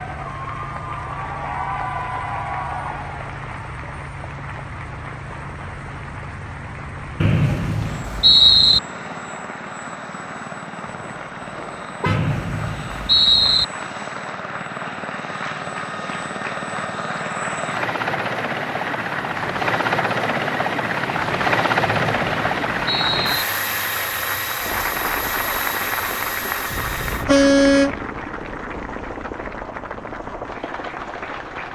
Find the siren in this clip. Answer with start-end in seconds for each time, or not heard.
not heard.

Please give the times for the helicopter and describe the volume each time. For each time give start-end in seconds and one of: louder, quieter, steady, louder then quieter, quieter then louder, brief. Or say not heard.
0.0-31.7 louder then quieter.